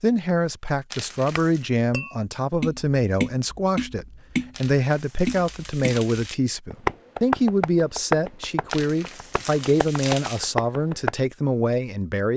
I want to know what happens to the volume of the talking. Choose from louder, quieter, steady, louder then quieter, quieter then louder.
steady.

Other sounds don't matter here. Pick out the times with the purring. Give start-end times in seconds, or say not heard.
not heard.